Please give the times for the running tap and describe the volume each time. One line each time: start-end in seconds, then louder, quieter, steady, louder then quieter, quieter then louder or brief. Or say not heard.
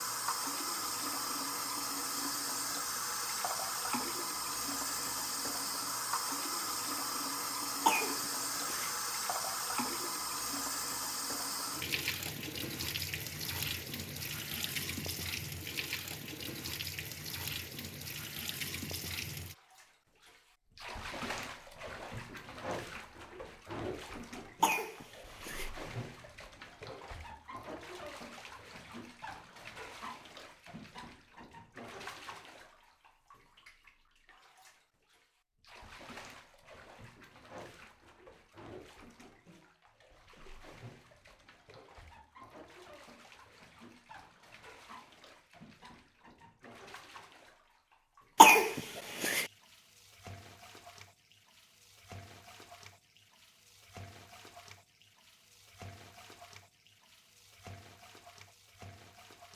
0.0-59.5 quieter.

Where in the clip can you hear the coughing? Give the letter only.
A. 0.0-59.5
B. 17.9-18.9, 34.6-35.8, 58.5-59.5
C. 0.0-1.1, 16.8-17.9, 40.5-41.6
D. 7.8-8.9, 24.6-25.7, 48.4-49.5
D.